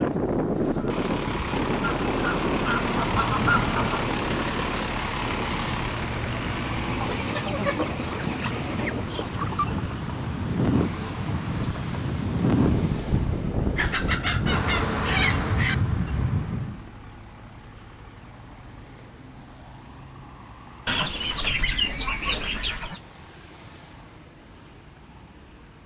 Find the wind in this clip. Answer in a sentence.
The wind can be heard from 0.0 to 16.9 s.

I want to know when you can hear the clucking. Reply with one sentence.
The clucking can be heard from 2.0 to 4.1 s, from 7.0 to 9.9 s, from 13.8 to 15.8 s and from 20.9 to 23.0 s.